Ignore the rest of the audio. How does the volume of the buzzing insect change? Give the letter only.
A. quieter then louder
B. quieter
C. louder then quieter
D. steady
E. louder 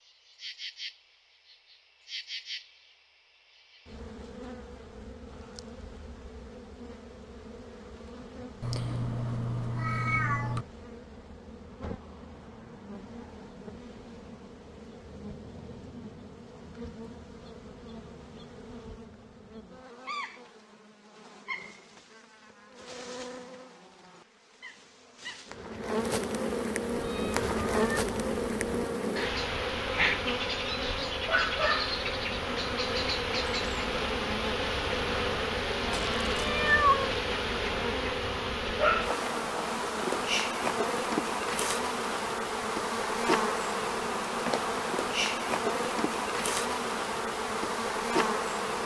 E.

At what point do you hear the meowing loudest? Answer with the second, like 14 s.
37 s.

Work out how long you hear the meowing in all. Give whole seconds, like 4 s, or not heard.
5 s.